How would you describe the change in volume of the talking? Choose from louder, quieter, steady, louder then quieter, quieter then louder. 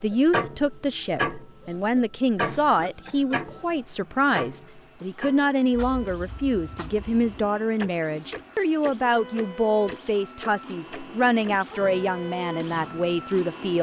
steady.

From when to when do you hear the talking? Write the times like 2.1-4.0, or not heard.
0.0-13.7.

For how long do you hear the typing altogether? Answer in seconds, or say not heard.
not heard.